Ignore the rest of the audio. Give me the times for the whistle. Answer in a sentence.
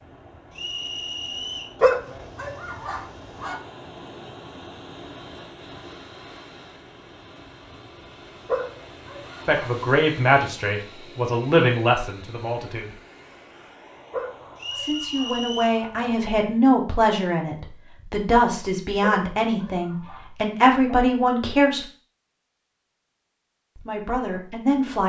You can hear the whistle from 0.5 to 1.8 s and from 14.6 to 15.8 s.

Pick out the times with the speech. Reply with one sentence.
You can hear the speech from 9.4 to 12.9 s, from 14.8 to 21.9 s and from 23.8 to 25.0 s.